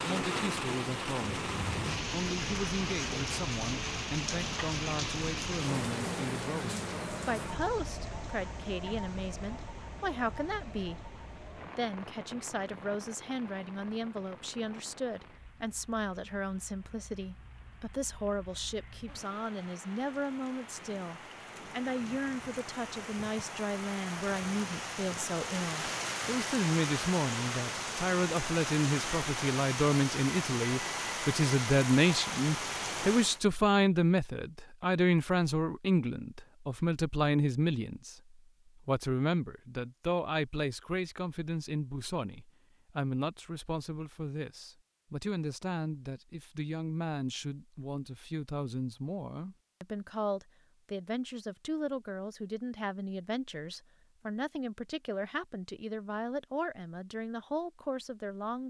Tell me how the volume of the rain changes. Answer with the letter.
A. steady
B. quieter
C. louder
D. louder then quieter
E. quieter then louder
E.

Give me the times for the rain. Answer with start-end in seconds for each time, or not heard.
0.0-33.4.